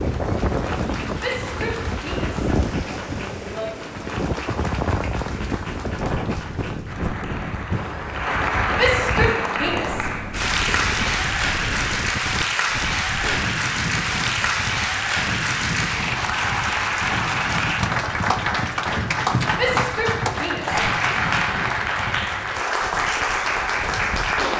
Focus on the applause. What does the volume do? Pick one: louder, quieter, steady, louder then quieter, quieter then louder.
louder.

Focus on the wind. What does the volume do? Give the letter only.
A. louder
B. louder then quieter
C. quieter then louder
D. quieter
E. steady
D.